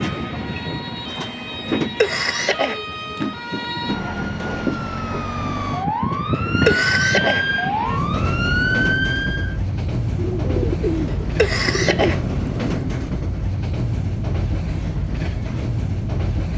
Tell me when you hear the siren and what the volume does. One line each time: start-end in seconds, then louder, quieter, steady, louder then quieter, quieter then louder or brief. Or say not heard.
0.0-9.6 louder.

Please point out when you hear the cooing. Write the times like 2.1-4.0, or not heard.
10.2-12.2.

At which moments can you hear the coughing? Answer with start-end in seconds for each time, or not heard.
1.8-3.2, 6.3-7.5, 11.1-12.2.